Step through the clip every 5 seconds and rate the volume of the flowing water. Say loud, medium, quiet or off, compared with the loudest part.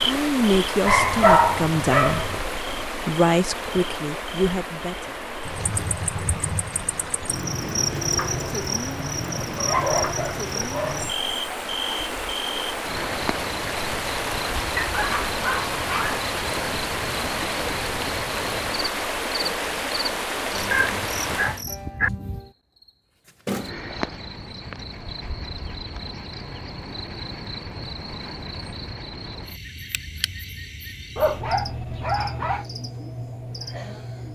loud, medium, loud, loud, loud, off, off.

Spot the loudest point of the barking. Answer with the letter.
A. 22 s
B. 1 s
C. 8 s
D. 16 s
B.